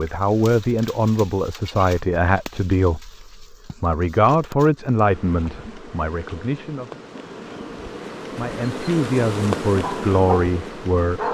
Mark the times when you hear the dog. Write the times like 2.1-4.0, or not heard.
9.8-10.5.